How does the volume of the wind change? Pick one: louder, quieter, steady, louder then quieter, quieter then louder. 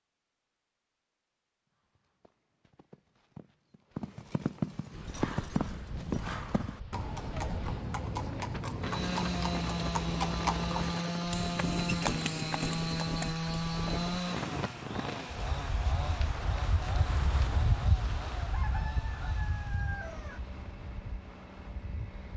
louder then quieter.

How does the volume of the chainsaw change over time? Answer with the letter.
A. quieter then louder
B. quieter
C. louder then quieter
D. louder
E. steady
B.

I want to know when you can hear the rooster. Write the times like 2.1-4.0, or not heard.
18.4-20.4.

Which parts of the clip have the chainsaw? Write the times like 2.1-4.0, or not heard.
8.8-22.3.